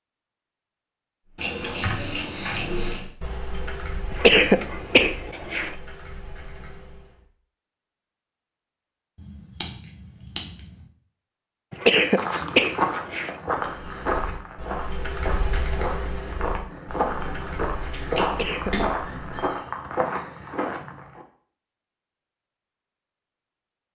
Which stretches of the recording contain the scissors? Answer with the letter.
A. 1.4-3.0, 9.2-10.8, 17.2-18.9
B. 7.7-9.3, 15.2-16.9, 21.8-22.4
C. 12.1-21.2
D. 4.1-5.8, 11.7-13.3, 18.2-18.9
A.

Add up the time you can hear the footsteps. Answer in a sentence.
The footsteps can be heard for 9 seconds in total.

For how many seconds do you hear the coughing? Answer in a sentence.
The coughing can be heard for 4 seconds in total.